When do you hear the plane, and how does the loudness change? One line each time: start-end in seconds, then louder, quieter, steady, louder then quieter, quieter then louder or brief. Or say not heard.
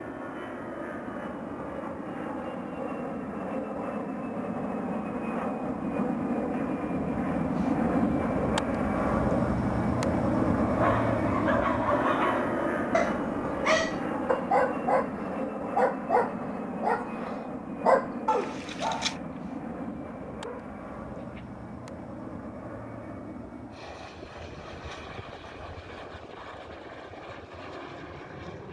0.0-28.6 louder then quieter.